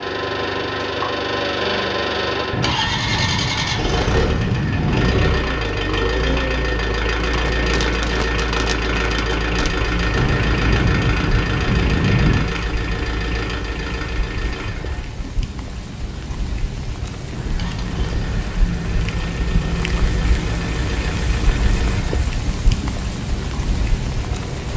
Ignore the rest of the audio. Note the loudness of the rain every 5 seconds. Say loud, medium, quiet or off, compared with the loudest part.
off, loud, medium, loud, loud.